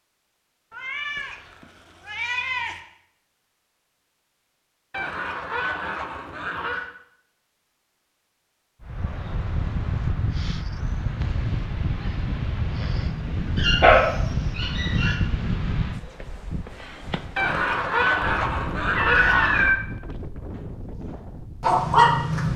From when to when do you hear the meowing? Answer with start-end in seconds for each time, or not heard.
0.7-2.8, 18.9-19.8.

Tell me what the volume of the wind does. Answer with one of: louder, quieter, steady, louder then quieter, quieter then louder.
quieter.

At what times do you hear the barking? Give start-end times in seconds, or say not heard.
13.6-15.2, 20.5-22.5.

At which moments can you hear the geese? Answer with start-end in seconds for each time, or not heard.
4.9-6.9, 17.4-19.8.